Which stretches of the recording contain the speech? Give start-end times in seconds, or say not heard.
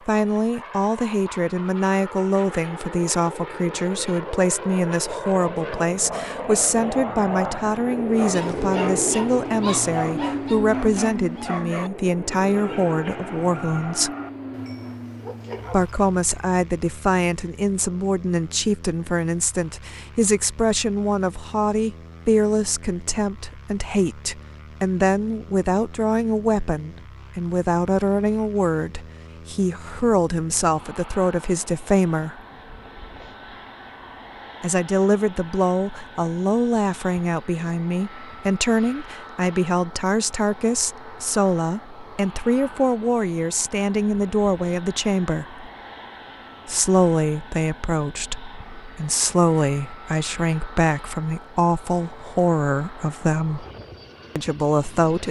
0.1-14.1, 15.7-32.4, 34.6-45.6, 46.6-53.6, 54.4-55.2.